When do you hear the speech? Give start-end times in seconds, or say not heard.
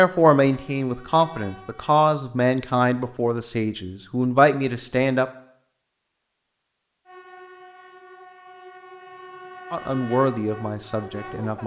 0.0-5.2, 9.7-11.6.